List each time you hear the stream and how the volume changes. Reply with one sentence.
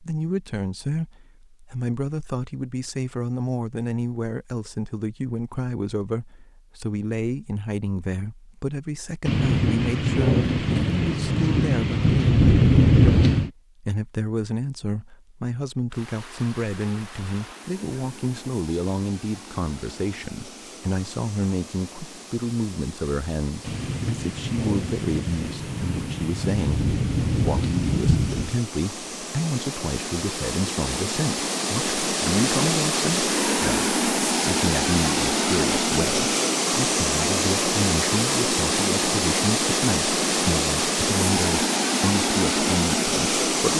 You can hear the stream from 15.9 to 43.7 s, getting louder.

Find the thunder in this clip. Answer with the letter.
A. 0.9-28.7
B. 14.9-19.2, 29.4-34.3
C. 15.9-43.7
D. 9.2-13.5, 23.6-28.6
D.